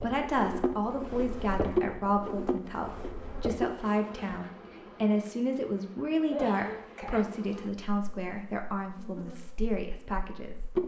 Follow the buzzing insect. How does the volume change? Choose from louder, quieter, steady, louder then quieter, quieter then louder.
quieter.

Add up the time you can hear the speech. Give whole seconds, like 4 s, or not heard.
11 s.